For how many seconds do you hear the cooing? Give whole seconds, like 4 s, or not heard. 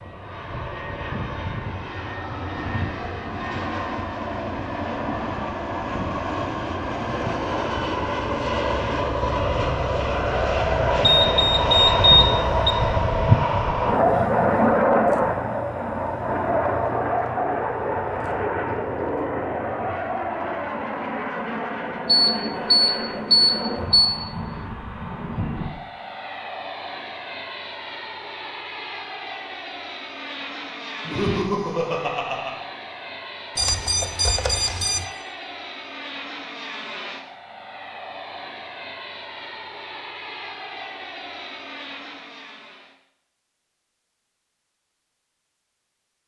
not heard.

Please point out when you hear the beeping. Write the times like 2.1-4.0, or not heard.
11.0-12.8, 22.1-24.1, 33.5-35.0.